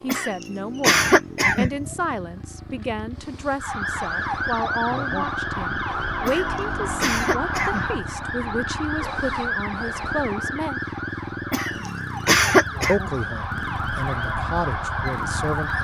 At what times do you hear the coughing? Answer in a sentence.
You can hear the coughing from 0.1 to 1.9 s, from 6.2 to 8.1 s and from 11.5 to 12.9 s.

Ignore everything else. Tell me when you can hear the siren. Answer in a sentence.
The siren can be heard from 3.5 to 15.7 s.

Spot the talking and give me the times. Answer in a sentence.
You can hear the talking from 0.0 to 10.8 s and from 12.8 to 15.7 s.